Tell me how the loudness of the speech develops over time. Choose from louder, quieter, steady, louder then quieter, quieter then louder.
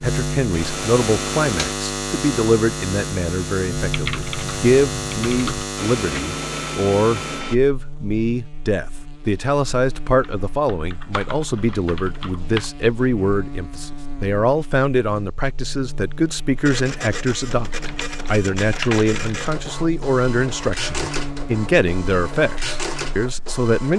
steady.